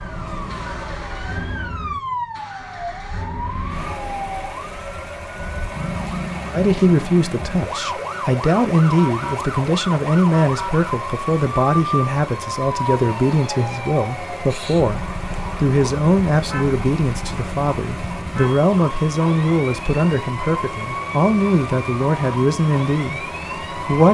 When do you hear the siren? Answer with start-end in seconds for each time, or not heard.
0.0-24.0.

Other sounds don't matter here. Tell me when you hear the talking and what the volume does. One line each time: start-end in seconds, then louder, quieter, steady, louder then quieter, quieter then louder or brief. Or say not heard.
6.5-24.0 steady.